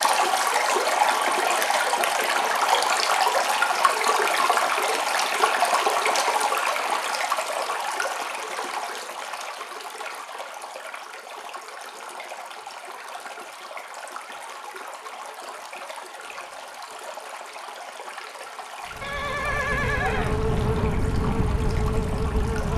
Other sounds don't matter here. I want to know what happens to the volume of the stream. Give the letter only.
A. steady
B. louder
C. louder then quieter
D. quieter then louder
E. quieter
E.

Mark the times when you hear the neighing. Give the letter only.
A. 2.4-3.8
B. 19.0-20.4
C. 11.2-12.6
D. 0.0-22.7
B.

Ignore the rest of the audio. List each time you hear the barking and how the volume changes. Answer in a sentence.
The barking can't be heard in this clip.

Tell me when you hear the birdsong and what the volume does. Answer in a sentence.
You can't hear the birdsong here.